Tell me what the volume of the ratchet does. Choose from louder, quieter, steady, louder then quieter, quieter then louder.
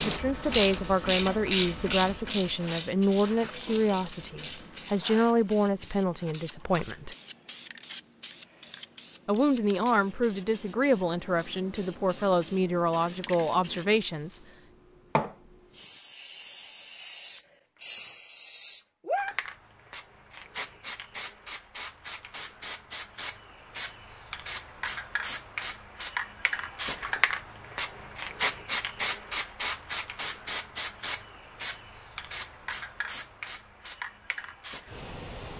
quieter.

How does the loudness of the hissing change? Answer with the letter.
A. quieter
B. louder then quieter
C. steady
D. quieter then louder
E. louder
E.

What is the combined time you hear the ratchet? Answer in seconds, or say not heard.
5 s.